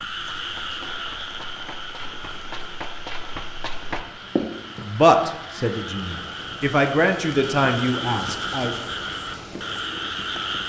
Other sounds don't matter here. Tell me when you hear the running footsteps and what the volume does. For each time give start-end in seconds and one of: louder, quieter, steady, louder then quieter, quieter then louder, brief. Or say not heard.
0.0-4.8 louder.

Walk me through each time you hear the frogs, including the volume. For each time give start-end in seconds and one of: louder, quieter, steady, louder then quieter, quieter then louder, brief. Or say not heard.
0.0-10.6 quieter then louder.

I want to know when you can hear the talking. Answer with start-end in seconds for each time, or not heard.
4.8-8.8.